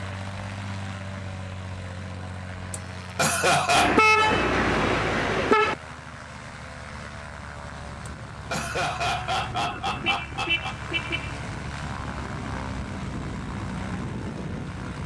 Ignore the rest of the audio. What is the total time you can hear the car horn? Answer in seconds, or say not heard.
3 s.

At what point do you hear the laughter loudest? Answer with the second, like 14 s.
4 s.